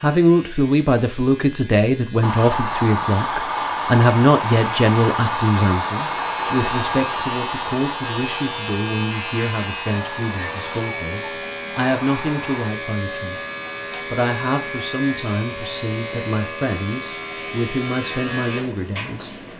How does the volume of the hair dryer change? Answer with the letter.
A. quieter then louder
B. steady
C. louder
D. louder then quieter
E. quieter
E.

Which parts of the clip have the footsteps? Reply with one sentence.
You can't hear the footsteps here.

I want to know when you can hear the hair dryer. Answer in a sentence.
The hair dryer can be heard from 2.2 to 12.7 s.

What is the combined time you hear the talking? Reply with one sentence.
You can hear the talking for 19 seconds altogether.